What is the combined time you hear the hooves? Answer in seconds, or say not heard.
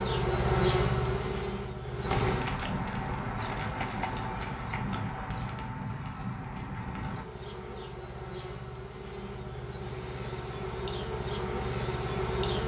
5 s.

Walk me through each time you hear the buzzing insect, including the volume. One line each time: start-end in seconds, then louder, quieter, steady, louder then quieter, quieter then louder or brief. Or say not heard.
0.0-2.5 brief
7.0-12.6 louder.